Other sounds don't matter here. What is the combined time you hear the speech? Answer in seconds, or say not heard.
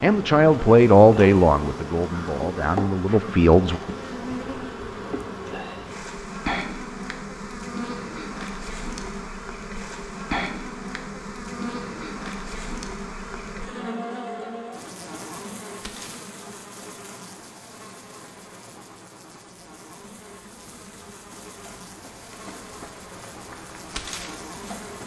4 s.